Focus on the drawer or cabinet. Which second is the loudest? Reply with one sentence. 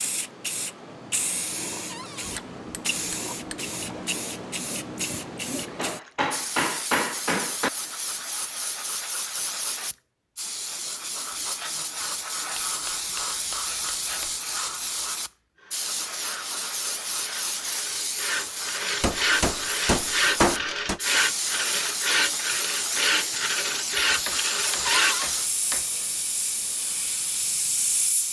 The loudest moment of the drawer or cabinet is at 25 seconds.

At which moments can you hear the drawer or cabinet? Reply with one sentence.
The drawer or cabinet can be heard from 1.9 to 2.4 s and from 24.9 to 25.3 s.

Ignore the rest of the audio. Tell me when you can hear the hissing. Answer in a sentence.
You can hear the hissing from 0.0 to 28.2 s.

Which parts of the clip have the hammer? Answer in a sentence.
The hammer can be heard from 2.2 to 3.6 s, from 5.8 to 7.7 s, from 12.6 to 14.3 s, from 19.0 to 21.0 s and from 24.2 to 25.9 s.